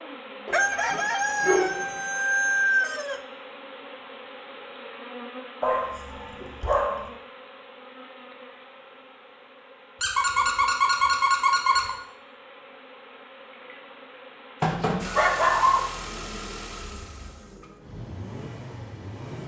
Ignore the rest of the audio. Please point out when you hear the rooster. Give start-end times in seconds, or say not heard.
0.5-3.2.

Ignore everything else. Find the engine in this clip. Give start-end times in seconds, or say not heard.
14.9-19.4.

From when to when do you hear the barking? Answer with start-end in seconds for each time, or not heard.
0.5-1.9, 5.6-7.0, 10.0-11.9, 14.6-16.2.